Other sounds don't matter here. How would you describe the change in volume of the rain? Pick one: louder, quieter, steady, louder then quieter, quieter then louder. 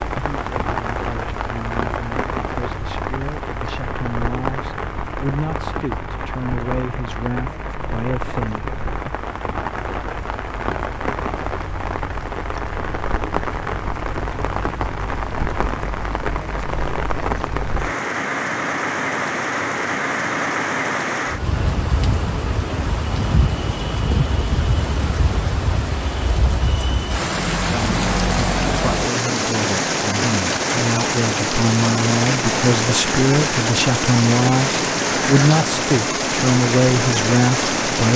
louder.